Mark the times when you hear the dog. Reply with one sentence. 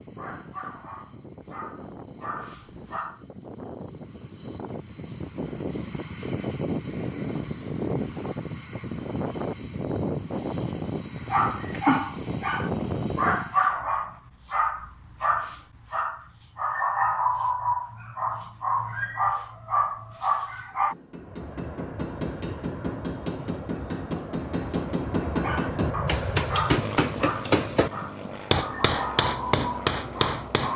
You can hear the dog from 0.0 to 3.2 s, from 11.3 to 20.9 s and from 25.4 to 30.7 s.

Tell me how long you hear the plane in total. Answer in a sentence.
You can hear the plane for 23 seconds altogether.